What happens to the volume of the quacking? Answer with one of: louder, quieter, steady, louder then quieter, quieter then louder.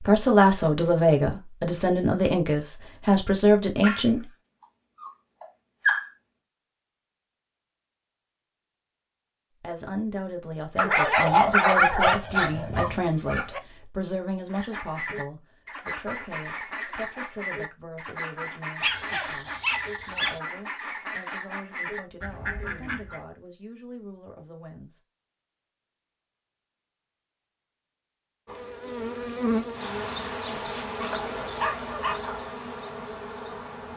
steady.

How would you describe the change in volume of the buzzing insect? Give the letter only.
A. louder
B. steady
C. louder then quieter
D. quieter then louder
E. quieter
E.